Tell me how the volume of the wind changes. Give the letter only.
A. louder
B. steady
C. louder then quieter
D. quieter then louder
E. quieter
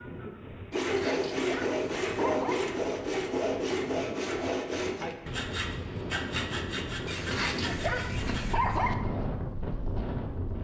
A.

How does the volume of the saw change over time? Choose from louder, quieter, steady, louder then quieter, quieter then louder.
quieter.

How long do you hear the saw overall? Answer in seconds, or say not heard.
8 s.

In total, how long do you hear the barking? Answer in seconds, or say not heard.
4 s.